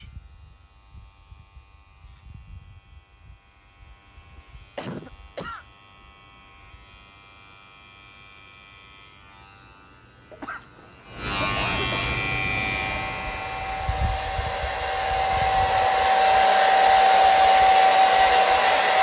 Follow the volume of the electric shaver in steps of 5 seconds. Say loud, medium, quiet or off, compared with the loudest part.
quiet, quiet, loud, quiet.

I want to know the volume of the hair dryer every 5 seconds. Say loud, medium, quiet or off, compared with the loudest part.
off, off, quiet, loud.